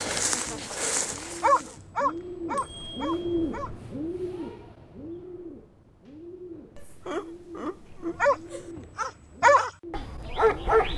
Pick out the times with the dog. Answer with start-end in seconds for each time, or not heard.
0.0-3.7, 8.2-10.9.